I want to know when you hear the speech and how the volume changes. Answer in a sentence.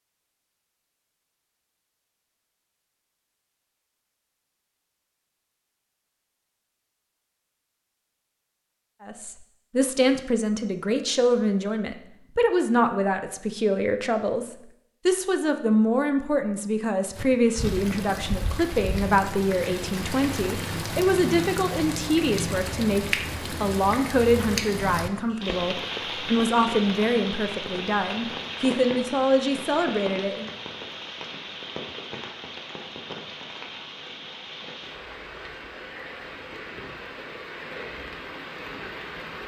The speech can be heard from 9.0 to 30.4 s, at a steady volume.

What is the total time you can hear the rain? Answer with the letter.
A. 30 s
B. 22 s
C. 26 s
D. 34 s
B.